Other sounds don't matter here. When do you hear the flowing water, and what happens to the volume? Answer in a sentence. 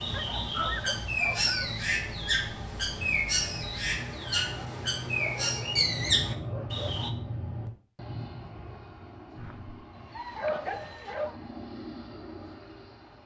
You can't hear the flowing water here.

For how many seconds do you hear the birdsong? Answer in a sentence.
You can hear the birdsong for 7 seconds altogether.